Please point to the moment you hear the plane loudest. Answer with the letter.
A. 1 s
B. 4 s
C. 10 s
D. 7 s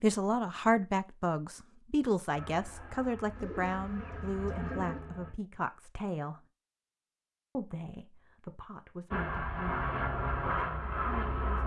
C.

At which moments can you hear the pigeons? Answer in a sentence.
The pigeons can be heard from 3.4 to 5.0 s.